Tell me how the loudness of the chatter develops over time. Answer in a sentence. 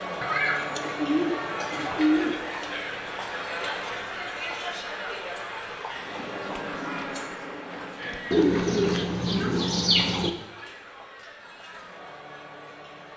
The loudness of the chatter goes down.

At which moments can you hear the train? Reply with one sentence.
The train can be heard from 5.9 to 9.3 s.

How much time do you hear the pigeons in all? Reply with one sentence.
You can hear the pigeons for 4 seconds altogether.